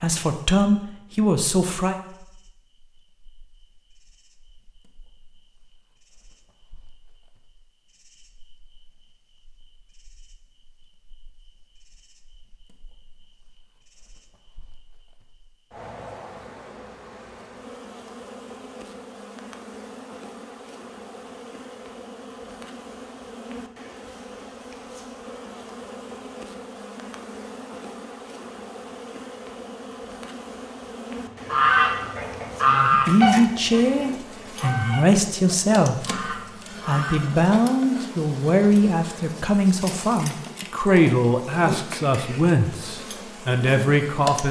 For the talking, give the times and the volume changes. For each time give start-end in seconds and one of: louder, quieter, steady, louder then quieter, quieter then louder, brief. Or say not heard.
0.0-1.9 brief
32.7-44.4 steady.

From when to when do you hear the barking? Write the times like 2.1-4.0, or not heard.
not heard.